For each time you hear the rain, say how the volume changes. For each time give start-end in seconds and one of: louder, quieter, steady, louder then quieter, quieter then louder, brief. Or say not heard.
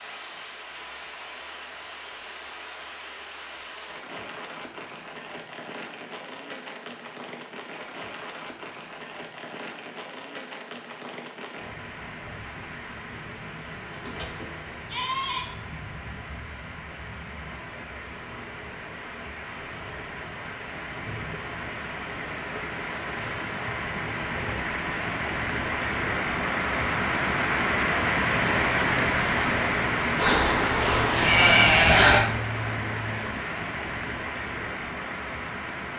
0.0-35.9 louder.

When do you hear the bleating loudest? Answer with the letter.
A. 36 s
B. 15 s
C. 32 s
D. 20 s
C.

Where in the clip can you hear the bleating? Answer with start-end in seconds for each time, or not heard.
13.9-15.4, 30.1-32.2.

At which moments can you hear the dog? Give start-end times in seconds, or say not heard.
not heard.